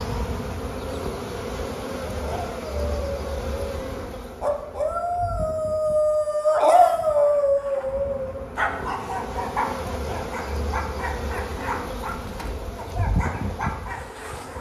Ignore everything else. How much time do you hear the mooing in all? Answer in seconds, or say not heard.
not heard.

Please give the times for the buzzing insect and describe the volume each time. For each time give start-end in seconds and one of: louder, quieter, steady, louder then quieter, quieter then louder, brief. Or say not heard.
0.0-14.5 quieter then louder.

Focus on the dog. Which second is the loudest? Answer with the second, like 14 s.
7 s.